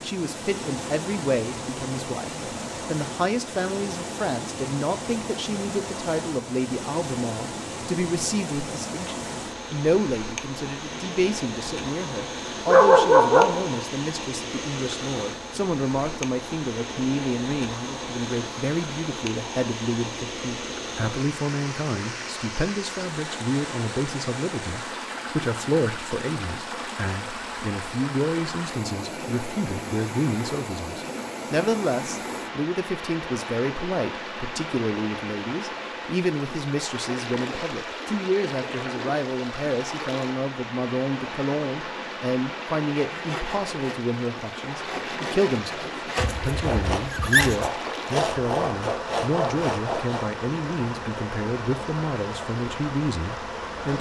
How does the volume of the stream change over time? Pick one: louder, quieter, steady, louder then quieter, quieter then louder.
steady.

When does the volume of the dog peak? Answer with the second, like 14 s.
13 s.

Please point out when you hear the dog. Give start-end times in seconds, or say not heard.
12.7-13.8, 46.2-47.7.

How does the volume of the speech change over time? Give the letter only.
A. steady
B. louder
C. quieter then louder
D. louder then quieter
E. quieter
A.